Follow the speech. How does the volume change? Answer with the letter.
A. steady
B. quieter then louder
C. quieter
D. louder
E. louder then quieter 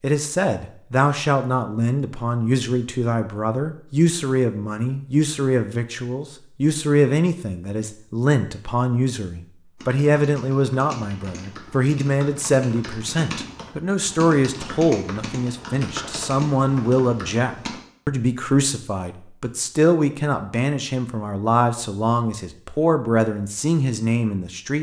A.